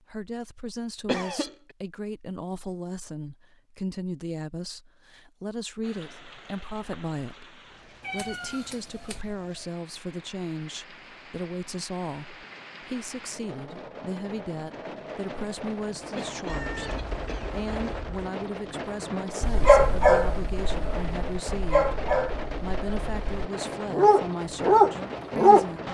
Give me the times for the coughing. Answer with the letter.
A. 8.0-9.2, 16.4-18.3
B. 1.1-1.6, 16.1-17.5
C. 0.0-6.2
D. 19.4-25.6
B.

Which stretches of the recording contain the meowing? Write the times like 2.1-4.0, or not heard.
8.0-9.2, 16.4-18.3.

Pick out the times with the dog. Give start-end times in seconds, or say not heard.
19.4-25.6.